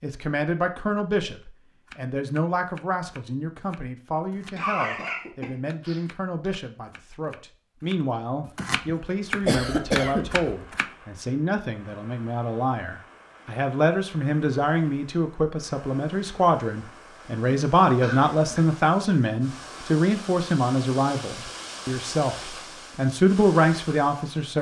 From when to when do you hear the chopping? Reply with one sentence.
You can hear the chopping from 1.9 to 10.9 s.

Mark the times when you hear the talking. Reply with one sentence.
The talking can be heard from 0.0 to 24.5 s.